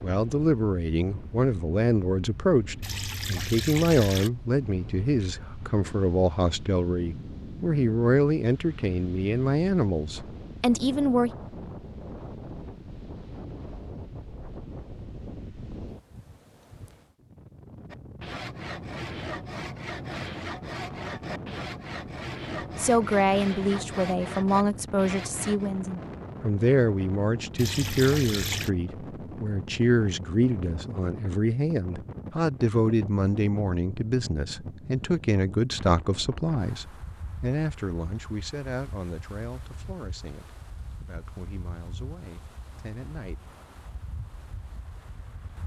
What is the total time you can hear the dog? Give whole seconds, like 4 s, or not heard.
not heard.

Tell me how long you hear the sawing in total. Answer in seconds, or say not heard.
8 s.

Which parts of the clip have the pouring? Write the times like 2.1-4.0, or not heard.
2.8-4.3, 27.6-28.7.